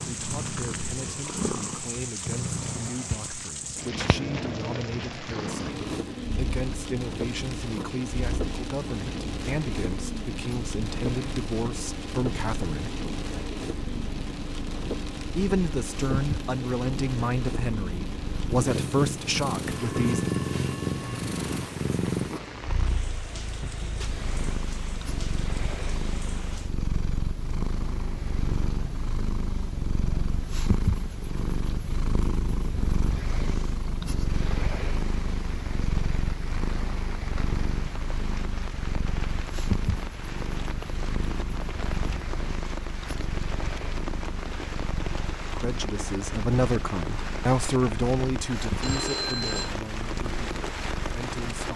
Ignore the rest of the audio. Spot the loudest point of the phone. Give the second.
49 s.